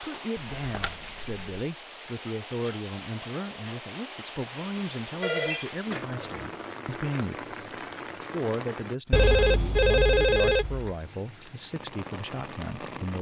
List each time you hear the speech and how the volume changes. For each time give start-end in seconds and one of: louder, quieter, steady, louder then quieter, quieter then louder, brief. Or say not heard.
0.0-13.1 steady.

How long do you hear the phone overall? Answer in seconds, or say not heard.
4 s.